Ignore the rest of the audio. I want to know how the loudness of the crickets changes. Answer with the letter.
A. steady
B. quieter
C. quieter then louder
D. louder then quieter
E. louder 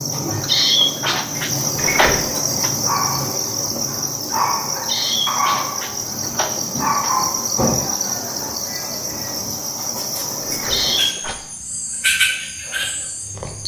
A.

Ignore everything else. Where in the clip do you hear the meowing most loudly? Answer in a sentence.
The loudest moment of the meowing is at 1 second.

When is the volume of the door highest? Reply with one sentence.
The loudest moment of the door is at 2 seconds.